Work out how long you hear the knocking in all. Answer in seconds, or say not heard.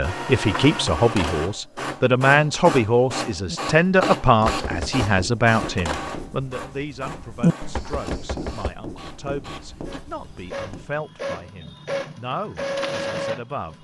2 s.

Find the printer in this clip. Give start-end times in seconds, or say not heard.
0.0-13.7.